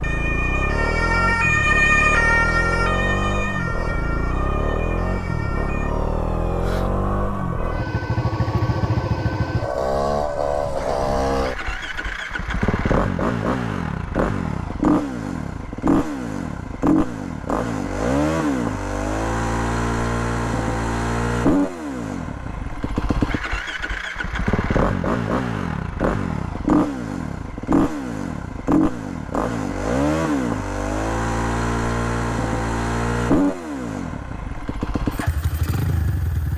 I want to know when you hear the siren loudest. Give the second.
2 s.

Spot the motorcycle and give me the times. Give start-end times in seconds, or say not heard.
0.0-36.5.